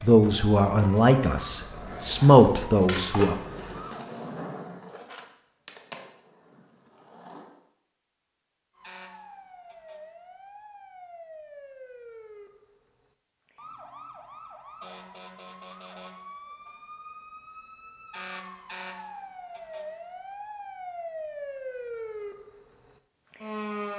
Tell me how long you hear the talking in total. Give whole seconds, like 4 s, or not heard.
3 s.